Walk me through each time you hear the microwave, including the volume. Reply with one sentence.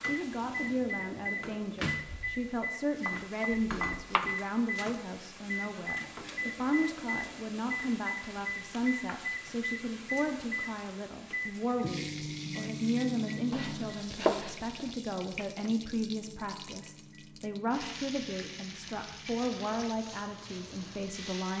The microwave can be heard from 0.0 to 21.4 s, getting quieter.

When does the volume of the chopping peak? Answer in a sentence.
The loudest moment of the chopping is at 14 seconds.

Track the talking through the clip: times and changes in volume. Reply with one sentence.
The talking can be heard from 0.0 to 21.5 s, at a steady volume.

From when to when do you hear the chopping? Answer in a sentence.
The chopping can be heard from 2.0 to 4.3 s and from 13.5 to 14.9 s.